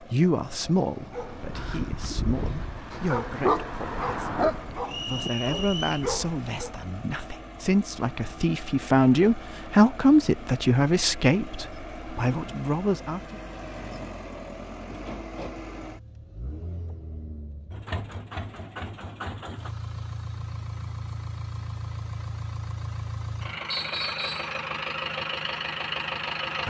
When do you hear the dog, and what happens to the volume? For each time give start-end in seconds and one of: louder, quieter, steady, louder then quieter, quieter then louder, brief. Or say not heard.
1.1-6.7 louder then quieter.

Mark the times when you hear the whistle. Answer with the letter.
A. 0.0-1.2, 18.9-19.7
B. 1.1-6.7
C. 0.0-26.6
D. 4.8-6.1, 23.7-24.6
D.